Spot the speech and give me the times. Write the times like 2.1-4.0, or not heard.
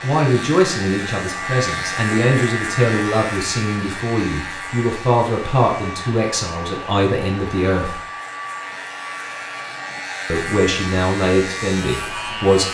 0.0-8.0, 10.3-12.6.